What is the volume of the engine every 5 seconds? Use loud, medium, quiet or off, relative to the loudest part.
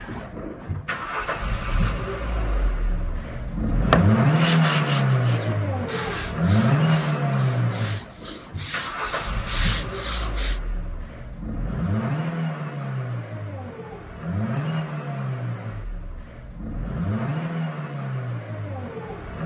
loud, loud, medium, medium.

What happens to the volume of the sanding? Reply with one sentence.
The volume of the sanding goes down, then up.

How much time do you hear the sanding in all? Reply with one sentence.
You can hear the sanding for 7 seconds altogether.